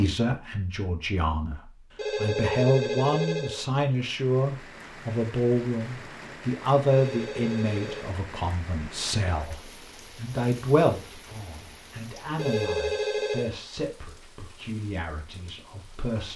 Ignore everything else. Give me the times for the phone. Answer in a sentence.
You can hear the phone from 1.9 to 3.6 s, from 6.9 to 8.1 s and from 12.3 to 13.5 s.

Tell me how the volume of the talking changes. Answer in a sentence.
The loudness of the talking goes down.